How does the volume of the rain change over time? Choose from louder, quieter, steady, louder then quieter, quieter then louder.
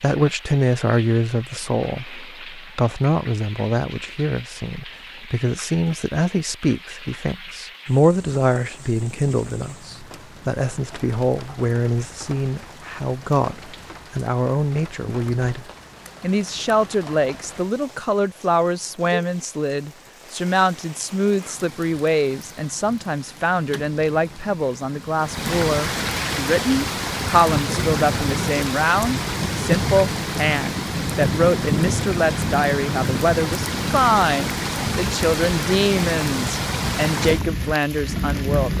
louder.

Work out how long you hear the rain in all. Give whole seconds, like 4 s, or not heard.
39 s.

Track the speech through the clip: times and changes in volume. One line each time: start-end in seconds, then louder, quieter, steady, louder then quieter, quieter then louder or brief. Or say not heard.
0.0-38.7 steady.